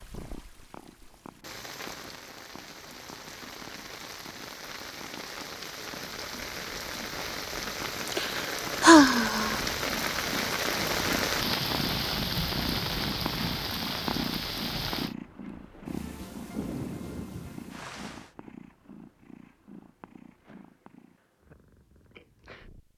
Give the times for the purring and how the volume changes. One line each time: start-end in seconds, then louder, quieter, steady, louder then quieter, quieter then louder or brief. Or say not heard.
0.0-22.9 louder then quieter.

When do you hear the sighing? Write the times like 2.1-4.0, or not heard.
8.1-9.6.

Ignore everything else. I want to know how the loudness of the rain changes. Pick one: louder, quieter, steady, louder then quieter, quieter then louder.
louder then quieter.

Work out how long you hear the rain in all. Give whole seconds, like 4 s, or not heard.
18 s.